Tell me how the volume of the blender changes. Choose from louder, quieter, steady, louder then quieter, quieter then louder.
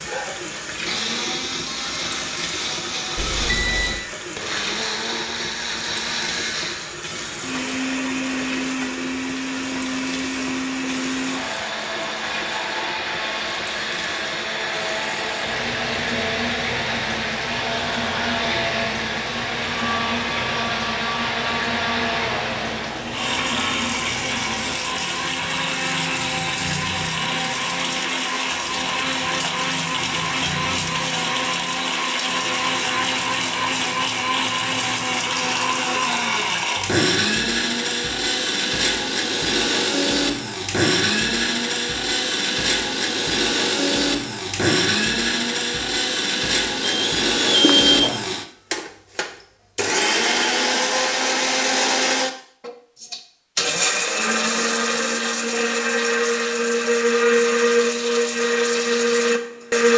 louder.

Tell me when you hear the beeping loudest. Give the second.
48 s.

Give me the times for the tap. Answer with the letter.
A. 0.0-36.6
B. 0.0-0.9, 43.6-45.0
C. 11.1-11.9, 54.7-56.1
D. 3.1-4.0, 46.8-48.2
A.